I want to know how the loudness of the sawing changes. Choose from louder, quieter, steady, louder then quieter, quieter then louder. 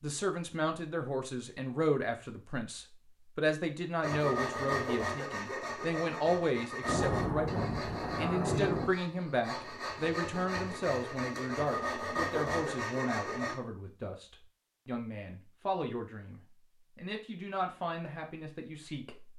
quieter then louder.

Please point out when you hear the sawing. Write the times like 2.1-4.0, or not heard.
4.0-13.6.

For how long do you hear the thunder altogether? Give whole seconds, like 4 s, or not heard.
2 s.